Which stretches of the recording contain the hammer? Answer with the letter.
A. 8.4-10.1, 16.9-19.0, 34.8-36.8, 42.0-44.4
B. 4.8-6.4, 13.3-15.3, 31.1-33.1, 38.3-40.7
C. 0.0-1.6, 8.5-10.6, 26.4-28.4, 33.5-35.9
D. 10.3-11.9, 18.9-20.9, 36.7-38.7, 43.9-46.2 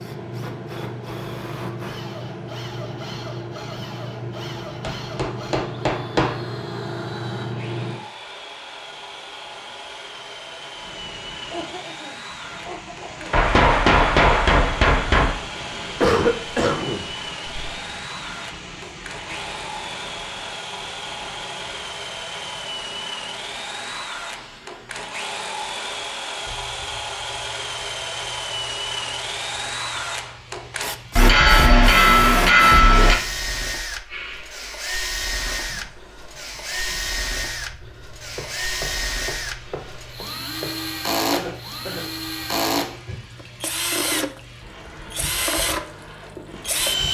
B.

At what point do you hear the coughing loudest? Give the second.
16 s.